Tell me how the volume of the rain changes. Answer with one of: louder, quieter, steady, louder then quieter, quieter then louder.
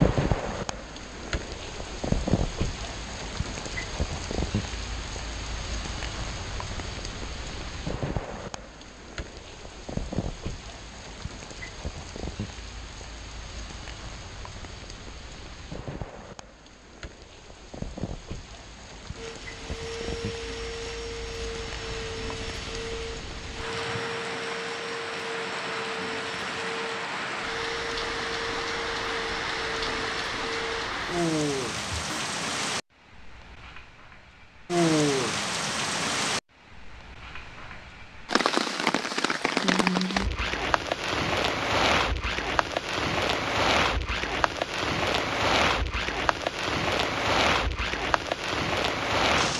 quieter then louder.